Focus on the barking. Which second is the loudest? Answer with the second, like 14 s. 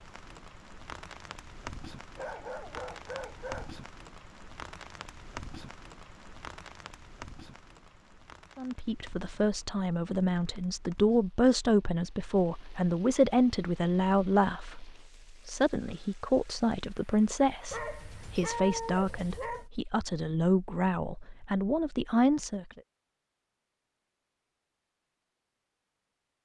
19 s.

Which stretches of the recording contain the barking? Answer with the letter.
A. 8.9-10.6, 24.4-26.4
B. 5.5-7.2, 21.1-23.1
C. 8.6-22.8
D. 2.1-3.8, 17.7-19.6
D.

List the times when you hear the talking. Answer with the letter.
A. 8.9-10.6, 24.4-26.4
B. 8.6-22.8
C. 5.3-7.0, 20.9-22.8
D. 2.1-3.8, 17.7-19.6
B.